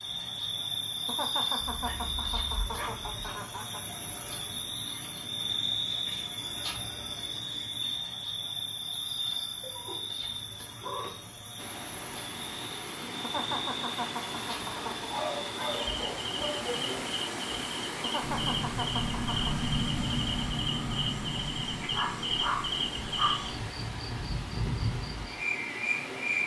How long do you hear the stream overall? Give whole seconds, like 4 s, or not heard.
15 s.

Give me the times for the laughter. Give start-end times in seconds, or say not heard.
1.1-3.8, 13.2-15.1, 18.0-19.6.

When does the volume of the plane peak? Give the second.
20 s.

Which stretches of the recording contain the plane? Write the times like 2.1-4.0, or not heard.
18.1-23.6.